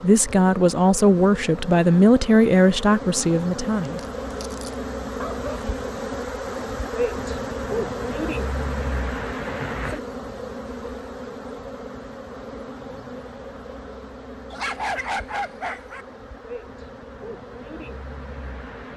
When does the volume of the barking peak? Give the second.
15 s.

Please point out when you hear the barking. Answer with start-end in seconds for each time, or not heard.
3.9-5.5, 14.5-16.1.